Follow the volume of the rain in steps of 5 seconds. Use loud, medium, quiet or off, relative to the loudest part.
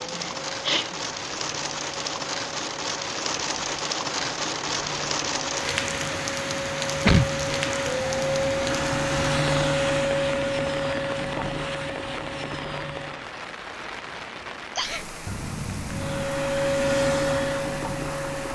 loud, loud, medium, medium.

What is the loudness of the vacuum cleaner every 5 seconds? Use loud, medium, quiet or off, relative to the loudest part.
quiet, loud, loud, loud.